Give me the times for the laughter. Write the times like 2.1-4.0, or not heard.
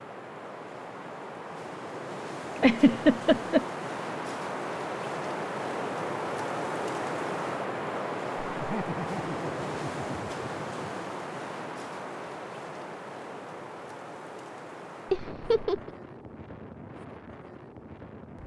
2.5-3.6, 8.6-10.3, 15.1-15.9.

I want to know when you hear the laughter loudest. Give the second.
3 s.